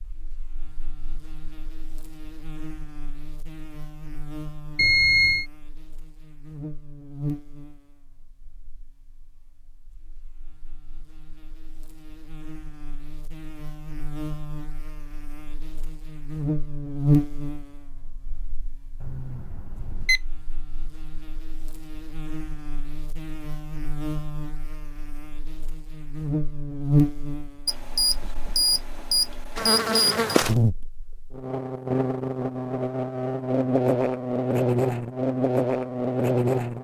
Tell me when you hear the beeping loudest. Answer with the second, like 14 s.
5 s.